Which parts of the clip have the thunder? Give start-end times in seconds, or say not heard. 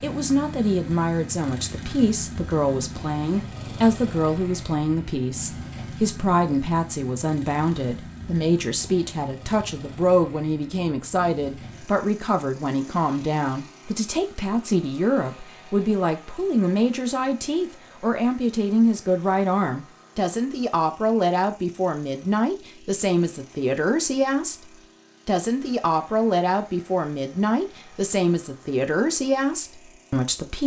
not heard.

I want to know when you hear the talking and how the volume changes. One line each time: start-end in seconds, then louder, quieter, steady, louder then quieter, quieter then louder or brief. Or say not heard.
0.0-30.6 steady.